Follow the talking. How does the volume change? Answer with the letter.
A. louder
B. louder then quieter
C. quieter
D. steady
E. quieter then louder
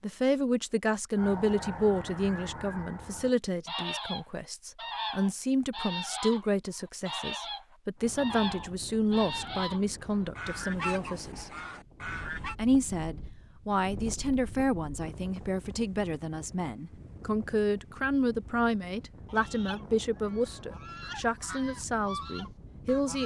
D.